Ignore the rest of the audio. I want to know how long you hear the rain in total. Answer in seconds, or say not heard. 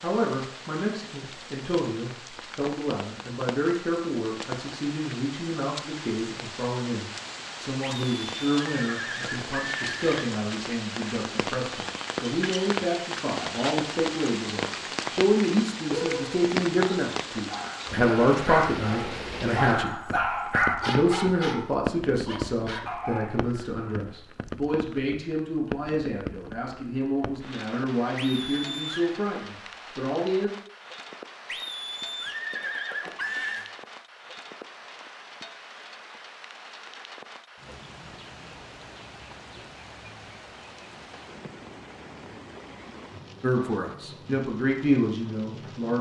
46 s.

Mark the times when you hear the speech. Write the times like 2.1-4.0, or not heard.
0.0-20.1, 20.9-30.5, 43.4-45.9.